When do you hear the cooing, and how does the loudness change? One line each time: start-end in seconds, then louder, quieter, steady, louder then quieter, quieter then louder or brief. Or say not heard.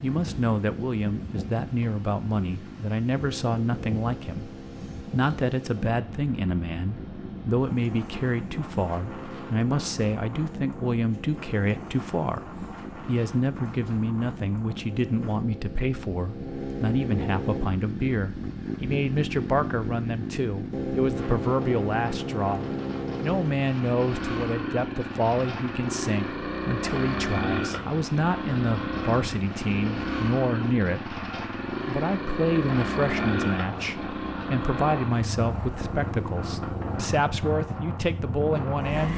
not heard.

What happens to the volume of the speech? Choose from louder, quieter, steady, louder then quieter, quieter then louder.
steady.